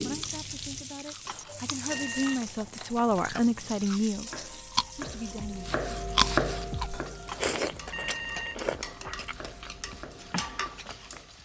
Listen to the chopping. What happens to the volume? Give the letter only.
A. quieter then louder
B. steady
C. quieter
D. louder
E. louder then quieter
E.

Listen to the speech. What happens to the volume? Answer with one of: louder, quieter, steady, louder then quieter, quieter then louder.
louder then quieter.